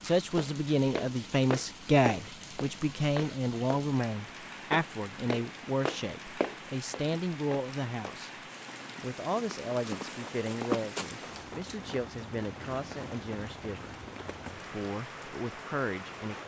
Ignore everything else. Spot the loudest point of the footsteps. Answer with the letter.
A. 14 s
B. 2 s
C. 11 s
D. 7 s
C.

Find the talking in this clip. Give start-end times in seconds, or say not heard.
0.0-8.3, 9.0-13.9, 14.7-16.4.